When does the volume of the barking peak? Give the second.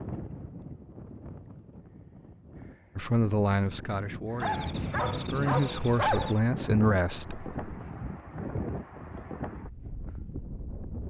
6 s.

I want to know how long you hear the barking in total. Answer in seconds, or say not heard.
2 s.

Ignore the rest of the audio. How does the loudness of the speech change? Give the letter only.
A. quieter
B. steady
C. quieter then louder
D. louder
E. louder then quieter
C.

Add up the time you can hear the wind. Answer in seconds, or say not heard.
11 s.